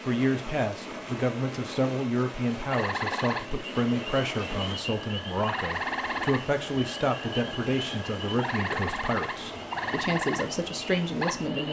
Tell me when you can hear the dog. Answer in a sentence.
The dog can't be heard in this clip.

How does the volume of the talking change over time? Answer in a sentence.
The volume of the talking stays about the same.